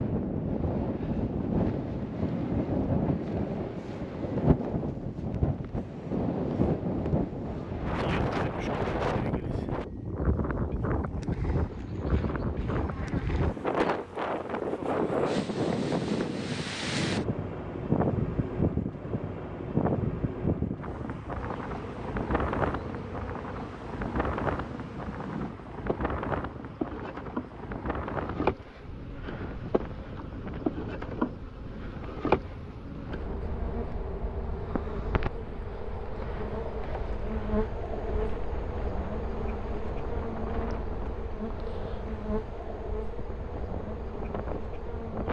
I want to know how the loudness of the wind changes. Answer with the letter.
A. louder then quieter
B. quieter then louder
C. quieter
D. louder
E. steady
C.